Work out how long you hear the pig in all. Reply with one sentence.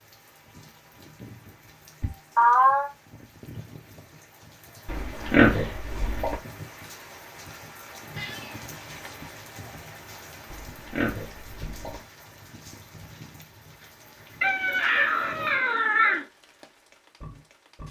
You can hear the pig for 3 seconds altogether.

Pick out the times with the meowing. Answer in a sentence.
You can hear the meowing from 2.0 to 2.9 s, from 8.2 to 9.3 s and from 14.4 to 16.2 s.